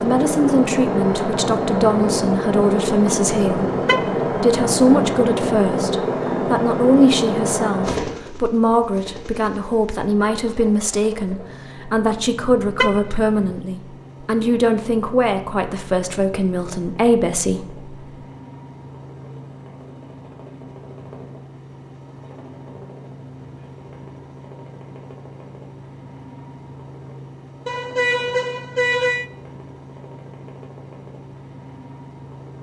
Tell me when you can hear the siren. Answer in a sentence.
The siren can't be heard in this clip.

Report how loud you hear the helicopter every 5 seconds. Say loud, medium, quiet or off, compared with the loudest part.
loud, loud, quiet, quiet, quiet, quiet, quiet.